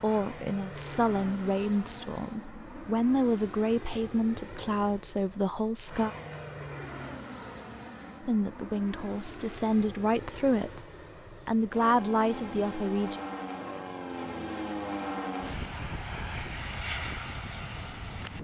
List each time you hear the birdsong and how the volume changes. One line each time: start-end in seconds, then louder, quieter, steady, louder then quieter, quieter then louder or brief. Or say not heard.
not heard.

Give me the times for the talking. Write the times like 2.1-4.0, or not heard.
0.0-6.1, 8.2-13.2.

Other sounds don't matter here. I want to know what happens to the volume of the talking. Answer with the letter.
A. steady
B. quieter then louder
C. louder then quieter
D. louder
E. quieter
A.